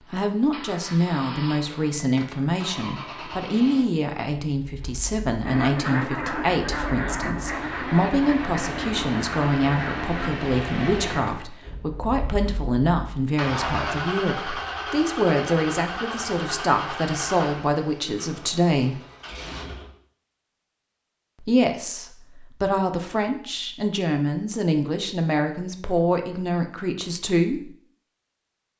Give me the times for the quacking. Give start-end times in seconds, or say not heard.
5.4-11.4.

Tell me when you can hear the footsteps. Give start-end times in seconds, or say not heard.
not heard.